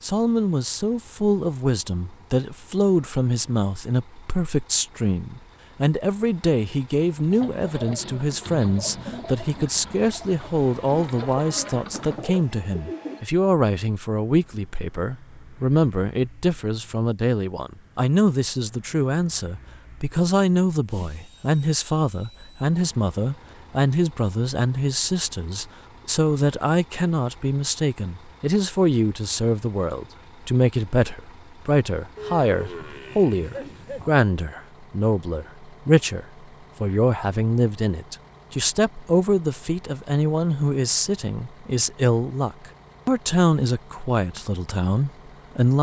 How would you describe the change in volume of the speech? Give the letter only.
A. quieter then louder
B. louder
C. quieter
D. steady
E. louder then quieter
D.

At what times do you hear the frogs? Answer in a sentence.
The frogs can't be heard in this clip.